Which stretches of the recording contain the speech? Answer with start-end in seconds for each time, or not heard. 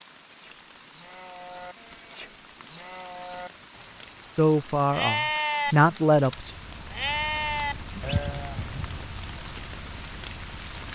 4.3-6.5.